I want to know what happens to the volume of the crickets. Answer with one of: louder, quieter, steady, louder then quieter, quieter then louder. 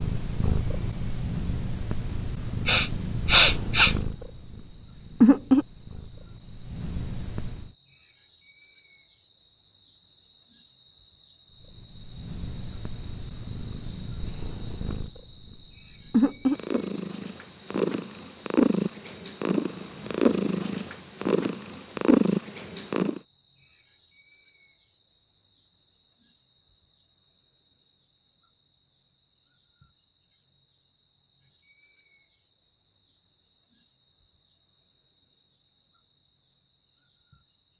louder then quieter.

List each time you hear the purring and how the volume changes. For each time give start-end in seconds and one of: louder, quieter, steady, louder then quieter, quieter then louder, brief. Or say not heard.
0.0-7.7 louder then quieter
11.8-23.2 louder.